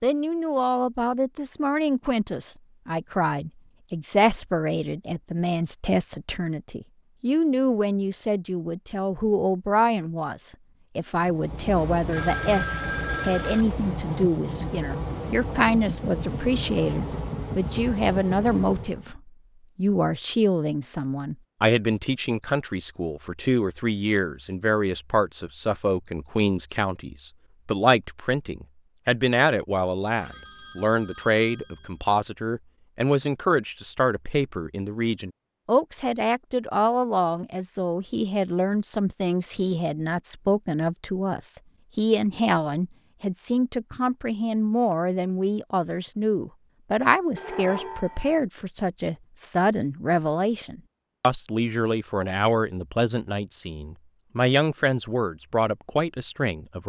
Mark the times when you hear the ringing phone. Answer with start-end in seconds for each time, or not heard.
12.1-13.7, 30.2-32.0, 47.4-48.4.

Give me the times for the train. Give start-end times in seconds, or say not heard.
11.2-19.1.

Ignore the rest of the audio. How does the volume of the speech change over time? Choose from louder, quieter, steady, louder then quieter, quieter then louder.
steady.